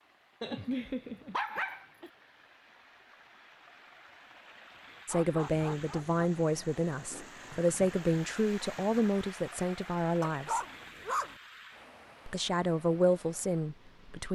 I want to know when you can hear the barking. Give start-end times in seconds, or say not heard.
0.4-2.1, 5.0-6.2, 10.2-11.3.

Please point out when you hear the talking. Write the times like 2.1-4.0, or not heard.
5.0-10.6, 12.2-14.2.